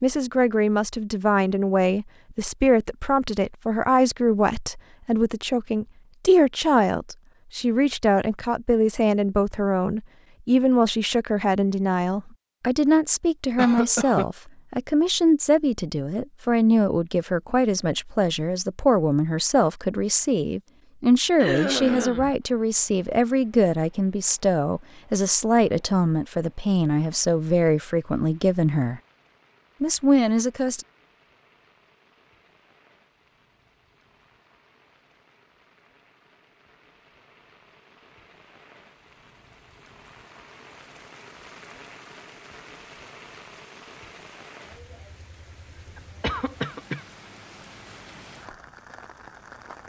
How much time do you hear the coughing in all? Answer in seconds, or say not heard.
3 s.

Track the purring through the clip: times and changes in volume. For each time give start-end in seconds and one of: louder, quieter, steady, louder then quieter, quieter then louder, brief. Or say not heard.
not heard.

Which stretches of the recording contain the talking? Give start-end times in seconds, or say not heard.
0.0-29.0, 29.8-30.9.